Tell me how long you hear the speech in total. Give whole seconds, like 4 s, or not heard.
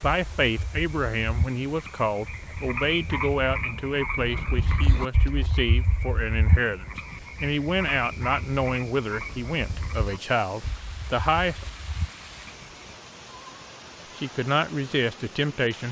13 s.